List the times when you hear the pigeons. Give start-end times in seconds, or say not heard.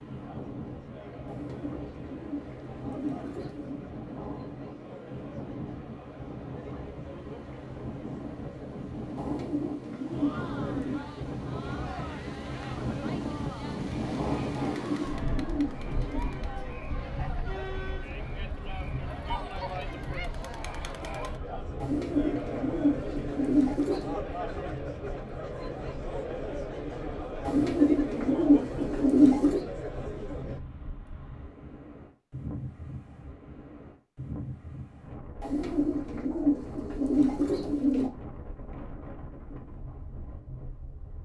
1.2-3.9, 9.2-11.1, 14.6-16.4, 21.8-24.1, 27.4-29.6, 35.4-38.1.